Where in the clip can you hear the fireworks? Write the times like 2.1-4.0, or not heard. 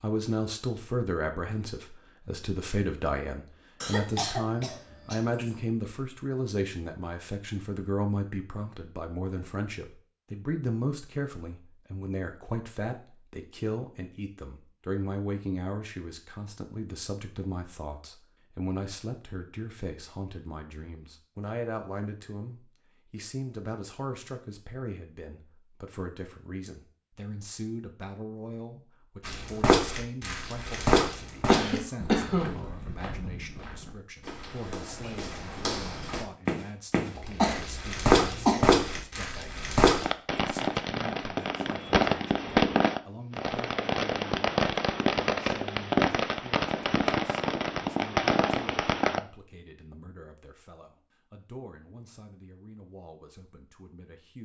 40.0-49.2.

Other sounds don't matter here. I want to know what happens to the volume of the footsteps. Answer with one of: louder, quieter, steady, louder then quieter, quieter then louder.
quieter then louder.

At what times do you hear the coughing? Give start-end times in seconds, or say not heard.
3.8-5.5, 31.4-32.6, 37.1-38.8.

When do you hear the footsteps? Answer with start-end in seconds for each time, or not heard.
29.2-40.0.